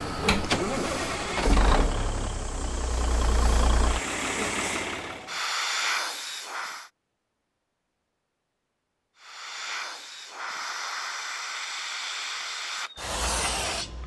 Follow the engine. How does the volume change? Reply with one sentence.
The volume of the engine goes down, then up.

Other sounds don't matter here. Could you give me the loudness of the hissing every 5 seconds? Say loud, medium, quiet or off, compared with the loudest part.
medium, loud, loud.